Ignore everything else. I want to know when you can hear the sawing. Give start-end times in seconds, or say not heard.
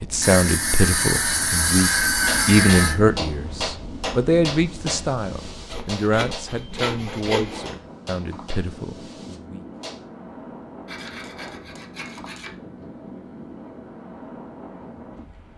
0.2-3.0, 5.7-7.8, 10.8-12.6.